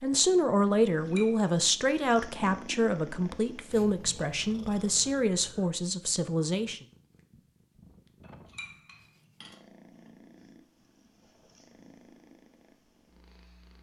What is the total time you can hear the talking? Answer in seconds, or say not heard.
7 s.